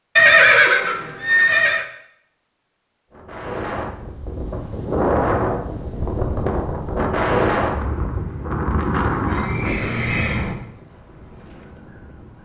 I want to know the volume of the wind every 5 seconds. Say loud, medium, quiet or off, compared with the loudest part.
medium, loud, medium.